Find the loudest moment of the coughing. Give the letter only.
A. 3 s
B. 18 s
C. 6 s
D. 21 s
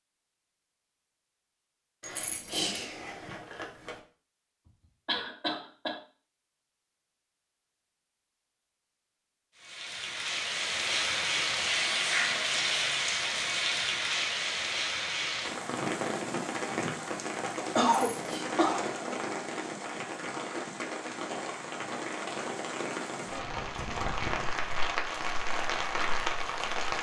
B.